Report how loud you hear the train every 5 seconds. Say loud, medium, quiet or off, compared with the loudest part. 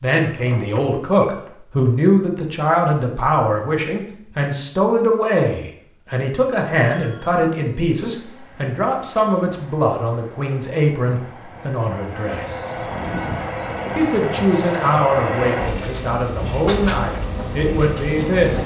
off, quiet, loud, loud.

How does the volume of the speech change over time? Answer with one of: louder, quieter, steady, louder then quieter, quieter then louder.
steady.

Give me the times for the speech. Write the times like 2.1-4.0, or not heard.
0.0-12.6, 13.9-18.6.